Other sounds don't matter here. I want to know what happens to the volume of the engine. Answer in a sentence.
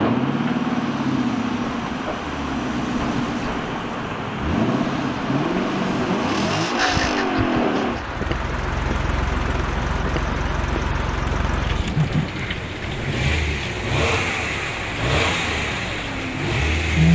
The loudness of the engine stays about the same.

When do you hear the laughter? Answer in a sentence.
You can hear the laughter from 6.7 to 8.0 s.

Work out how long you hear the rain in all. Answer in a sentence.
The rain can be heard for 17 seconds in total.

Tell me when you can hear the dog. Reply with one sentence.
You can't hear the dog here.